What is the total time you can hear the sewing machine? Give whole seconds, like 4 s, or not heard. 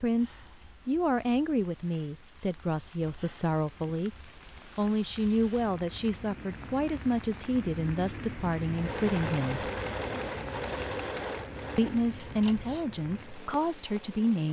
6 s.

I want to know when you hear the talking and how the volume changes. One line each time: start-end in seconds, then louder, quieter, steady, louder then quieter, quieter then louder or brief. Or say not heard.
0.0-9.7 steady
11.8-14.4 brief.